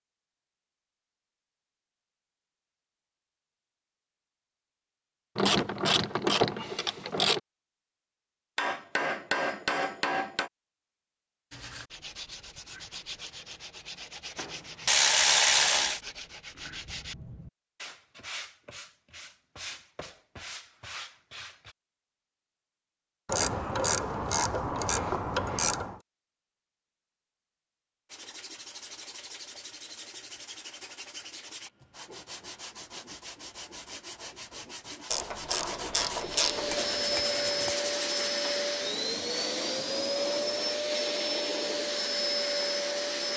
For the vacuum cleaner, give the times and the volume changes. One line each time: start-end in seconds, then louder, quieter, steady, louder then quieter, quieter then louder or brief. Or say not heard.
36.1-43.3 steady.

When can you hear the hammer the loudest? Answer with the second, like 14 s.
9 s.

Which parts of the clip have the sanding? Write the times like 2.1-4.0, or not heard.
11.5-21.8, 28.1-38.3.